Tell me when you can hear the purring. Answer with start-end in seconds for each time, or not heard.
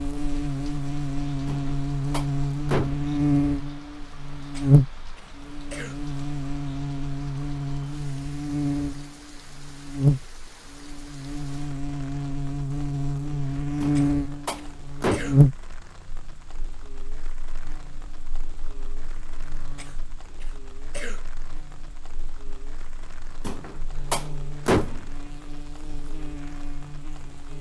not heard.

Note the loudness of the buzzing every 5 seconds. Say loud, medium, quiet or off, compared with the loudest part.
loud, medium, loud, loud, quiet, quiet.